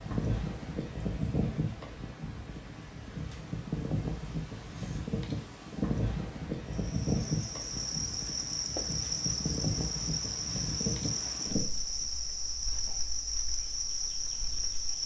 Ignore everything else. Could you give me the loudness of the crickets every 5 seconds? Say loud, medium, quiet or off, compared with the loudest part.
off, loud, loud.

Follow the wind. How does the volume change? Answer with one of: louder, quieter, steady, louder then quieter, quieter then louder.
quieter.